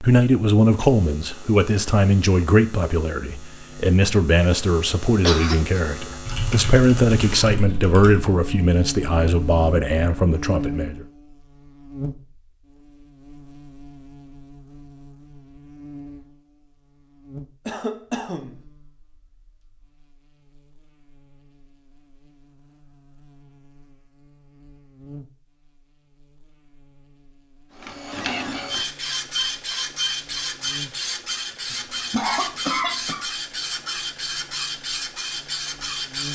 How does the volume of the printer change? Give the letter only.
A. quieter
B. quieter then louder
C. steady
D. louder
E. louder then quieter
C.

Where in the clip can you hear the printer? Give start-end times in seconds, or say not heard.
27.8-36.2.